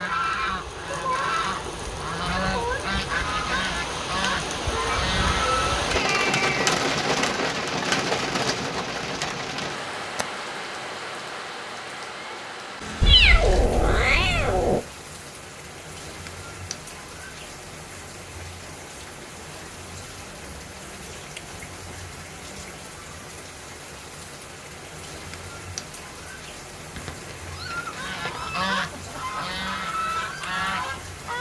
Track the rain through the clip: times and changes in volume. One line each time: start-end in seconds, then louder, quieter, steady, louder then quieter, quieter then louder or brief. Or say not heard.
0.0-31.3 quieter.